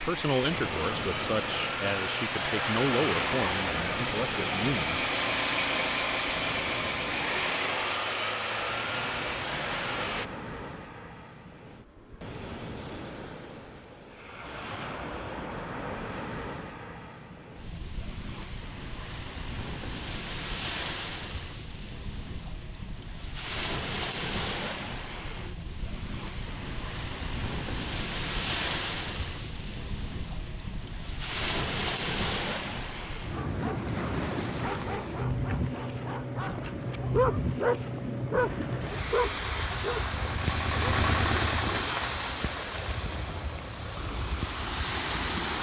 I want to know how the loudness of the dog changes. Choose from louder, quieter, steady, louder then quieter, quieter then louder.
louder.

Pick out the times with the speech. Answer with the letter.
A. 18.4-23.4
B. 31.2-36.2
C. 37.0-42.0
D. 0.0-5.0
D.